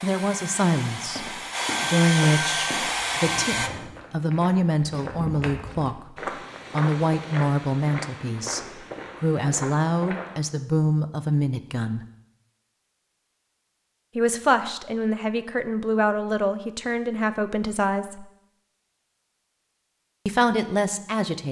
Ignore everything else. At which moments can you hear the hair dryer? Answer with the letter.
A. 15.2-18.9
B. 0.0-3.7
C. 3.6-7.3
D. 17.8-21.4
B.